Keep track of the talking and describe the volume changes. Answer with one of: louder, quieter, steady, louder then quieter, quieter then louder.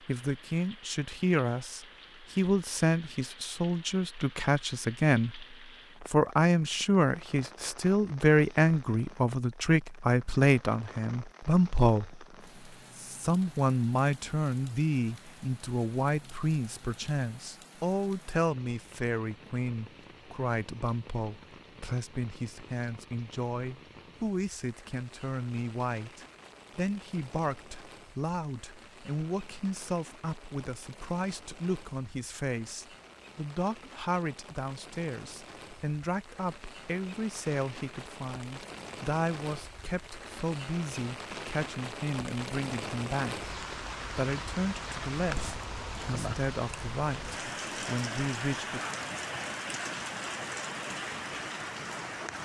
quieter.